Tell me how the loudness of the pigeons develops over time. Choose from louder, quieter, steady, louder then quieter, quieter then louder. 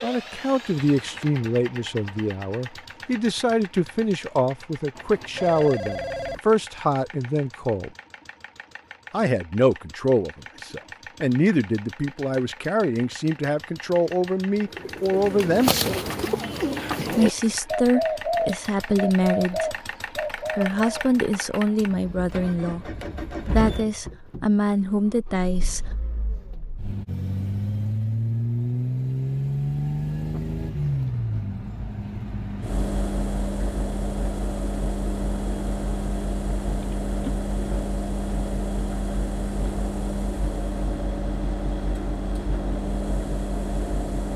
steady.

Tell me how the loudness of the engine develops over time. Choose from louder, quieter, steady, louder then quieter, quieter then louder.
louder.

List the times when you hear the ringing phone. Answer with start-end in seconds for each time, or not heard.
5.0-6.4, 36.8-37.4.